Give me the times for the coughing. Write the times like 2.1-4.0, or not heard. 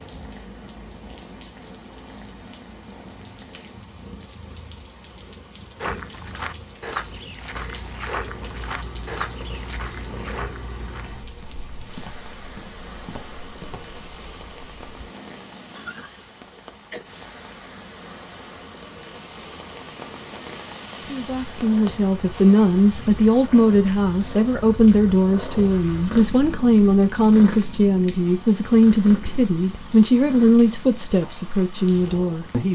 15.7-17.1.